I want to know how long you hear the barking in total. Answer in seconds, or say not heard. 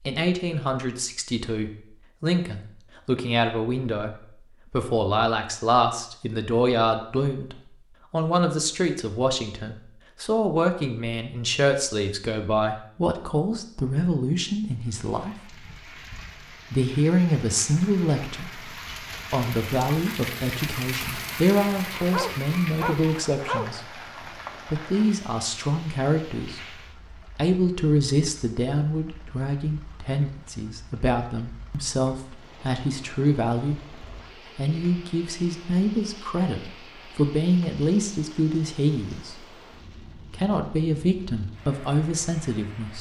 2 s.